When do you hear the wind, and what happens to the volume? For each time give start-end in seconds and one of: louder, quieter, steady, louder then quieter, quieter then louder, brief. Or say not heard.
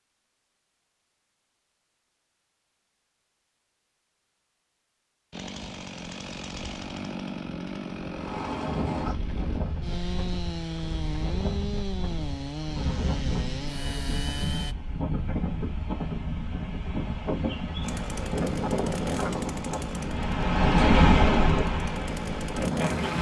8.1-23.1 louder.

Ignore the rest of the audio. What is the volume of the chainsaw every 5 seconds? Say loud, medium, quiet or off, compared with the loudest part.
off, loud, loud, loud, loud.